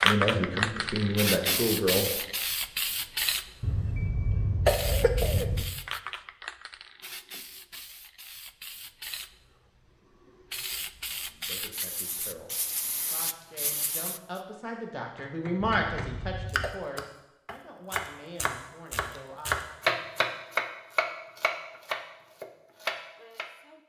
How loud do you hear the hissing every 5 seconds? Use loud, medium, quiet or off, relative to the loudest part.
loud, quiet, medium, off, off.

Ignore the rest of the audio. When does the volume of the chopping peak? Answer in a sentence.
The volume of the chopping peaks at 20 seconds.